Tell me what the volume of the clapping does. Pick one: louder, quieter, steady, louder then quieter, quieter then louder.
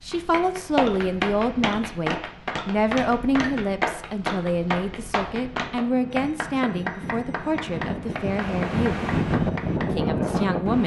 quieter.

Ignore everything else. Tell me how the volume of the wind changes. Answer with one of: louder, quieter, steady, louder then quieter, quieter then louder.
louder.